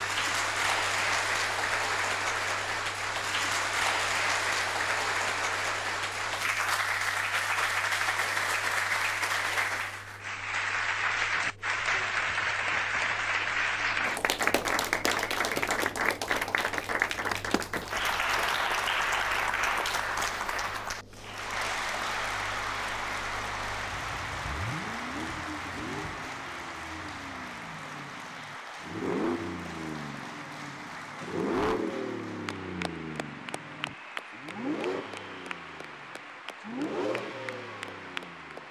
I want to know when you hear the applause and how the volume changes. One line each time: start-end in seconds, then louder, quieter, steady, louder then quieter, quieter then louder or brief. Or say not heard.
0.0-38.6 quieter.